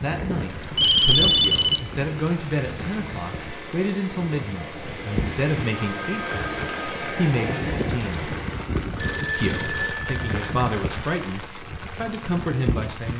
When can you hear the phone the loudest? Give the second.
1 s.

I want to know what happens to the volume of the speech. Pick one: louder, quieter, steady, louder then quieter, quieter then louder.
steady.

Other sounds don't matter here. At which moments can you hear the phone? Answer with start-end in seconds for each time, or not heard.
0.8-1.9, 5.7-7.3, 8.8-10.6.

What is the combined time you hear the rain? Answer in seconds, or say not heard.
13 s.